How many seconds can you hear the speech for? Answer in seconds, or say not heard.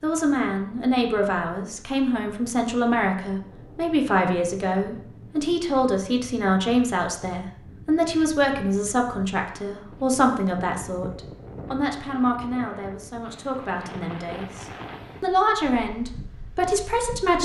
17 s.